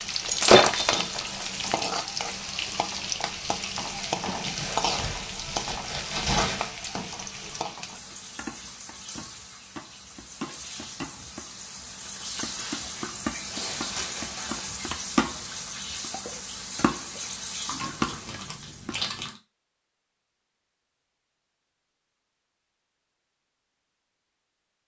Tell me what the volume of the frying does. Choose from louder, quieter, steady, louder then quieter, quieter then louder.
quieter then louder.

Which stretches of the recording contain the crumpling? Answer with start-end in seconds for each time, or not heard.
4.5-6.8, 12.7-14.8, 17.6-19.4.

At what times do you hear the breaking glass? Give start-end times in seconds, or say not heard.
0.2-1.4.